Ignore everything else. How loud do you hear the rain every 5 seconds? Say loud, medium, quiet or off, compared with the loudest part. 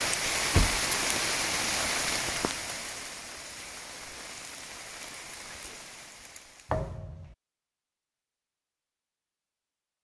loud, quiet.